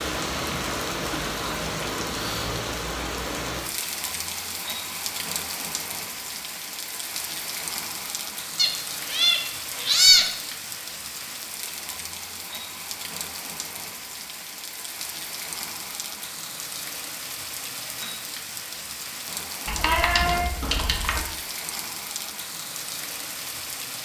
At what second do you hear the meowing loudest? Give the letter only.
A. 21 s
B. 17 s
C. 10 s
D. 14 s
C.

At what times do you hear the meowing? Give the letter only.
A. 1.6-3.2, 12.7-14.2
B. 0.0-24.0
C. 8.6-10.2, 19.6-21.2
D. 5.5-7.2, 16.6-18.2
C.